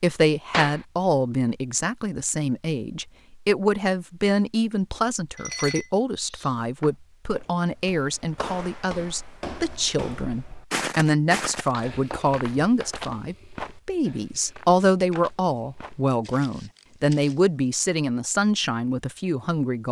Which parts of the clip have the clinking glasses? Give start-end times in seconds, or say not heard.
5.3-6.5.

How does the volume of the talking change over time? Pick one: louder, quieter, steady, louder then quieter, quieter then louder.
steady.